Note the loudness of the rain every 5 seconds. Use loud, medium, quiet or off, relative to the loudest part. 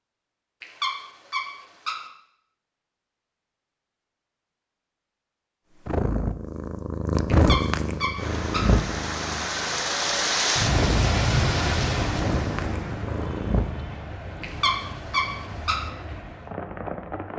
off, loud, loud, medium.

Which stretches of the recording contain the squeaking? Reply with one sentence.
The squeaking can be heard from 0.6 to 2.0 s, from 7.3 to 8.8 s and from 14.4 to 15.8 s.